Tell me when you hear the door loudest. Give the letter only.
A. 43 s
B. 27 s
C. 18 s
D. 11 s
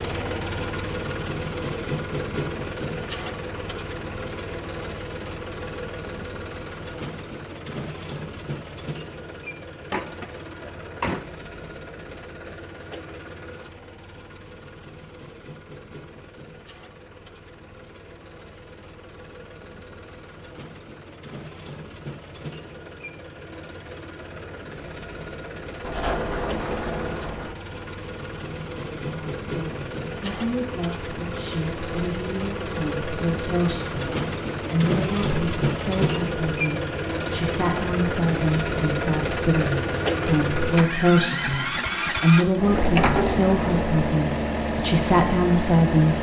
A.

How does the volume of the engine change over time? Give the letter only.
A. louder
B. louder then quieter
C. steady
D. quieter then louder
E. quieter
D.